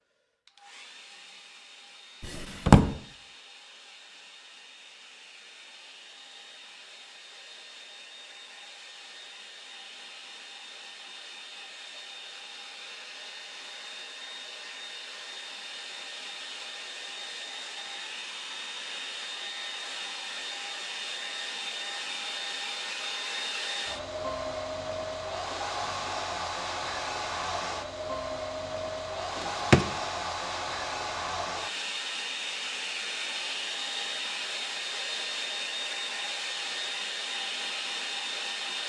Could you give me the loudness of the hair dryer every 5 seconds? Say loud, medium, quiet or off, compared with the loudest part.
quiet, quiet, medium, medium, loud, loud, loud, loud.